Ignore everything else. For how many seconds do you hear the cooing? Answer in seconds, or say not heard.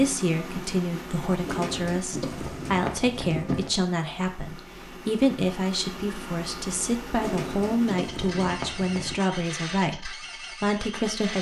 4 s.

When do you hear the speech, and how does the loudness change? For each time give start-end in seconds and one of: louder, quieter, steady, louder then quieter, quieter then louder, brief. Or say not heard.
0.0-11.3 steady.